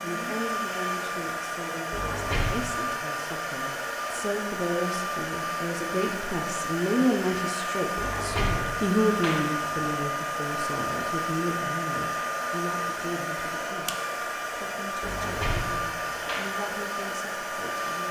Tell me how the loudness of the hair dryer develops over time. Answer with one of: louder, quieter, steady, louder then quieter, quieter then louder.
steady.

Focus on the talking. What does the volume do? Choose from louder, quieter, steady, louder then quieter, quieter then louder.
louder then quieter.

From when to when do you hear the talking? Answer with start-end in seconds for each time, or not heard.
0.0-13.8, 14.6-18.0.